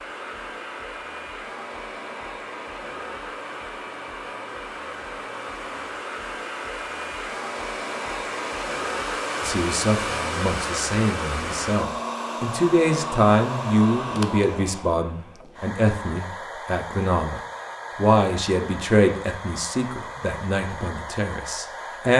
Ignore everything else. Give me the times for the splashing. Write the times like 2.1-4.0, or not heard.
not heard.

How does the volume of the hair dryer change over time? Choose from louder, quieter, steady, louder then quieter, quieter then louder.
louder then quieter.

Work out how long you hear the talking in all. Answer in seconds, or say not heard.
13 s.